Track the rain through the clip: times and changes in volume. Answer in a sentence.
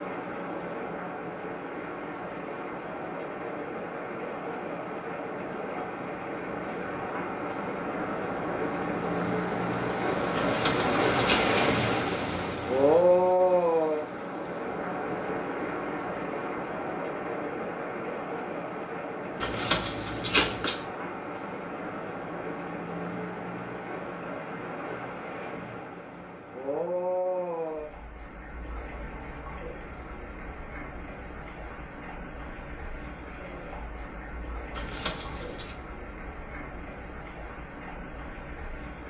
You can hear the rain from 0.0 to 39.0 s, getting louder then quieter.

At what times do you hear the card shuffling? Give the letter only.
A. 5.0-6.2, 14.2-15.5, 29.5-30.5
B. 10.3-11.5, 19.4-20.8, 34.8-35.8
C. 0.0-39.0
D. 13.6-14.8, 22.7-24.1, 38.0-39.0
B.